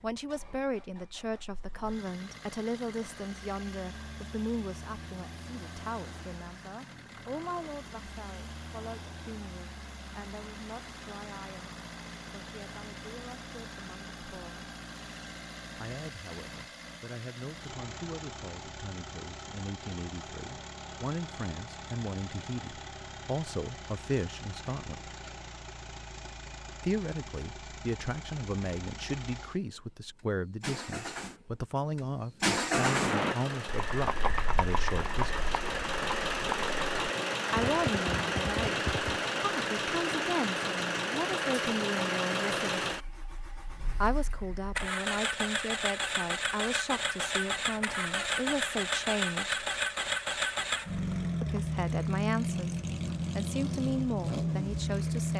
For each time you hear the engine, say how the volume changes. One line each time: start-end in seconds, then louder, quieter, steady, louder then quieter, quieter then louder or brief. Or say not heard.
0.0-55.3 louder.